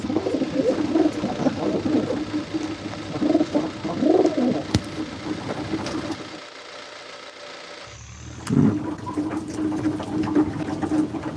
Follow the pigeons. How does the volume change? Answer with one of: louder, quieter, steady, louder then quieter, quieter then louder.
steady.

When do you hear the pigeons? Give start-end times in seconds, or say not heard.
0.0-6.4, 8.2-11.3.